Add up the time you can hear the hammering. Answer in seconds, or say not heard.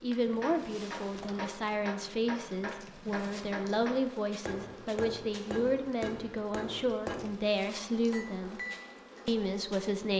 9 s.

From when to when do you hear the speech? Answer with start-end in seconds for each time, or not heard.
0.0-8.6, 9.2-10.1.